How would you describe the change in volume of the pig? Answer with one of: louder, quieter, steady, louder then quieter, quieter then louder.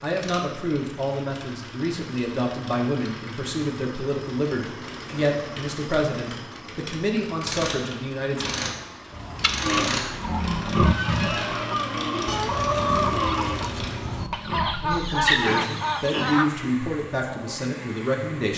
quieter.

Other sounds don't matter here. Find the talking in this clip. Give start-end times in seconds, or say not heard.
0.0-8.4, 14.8-18.5.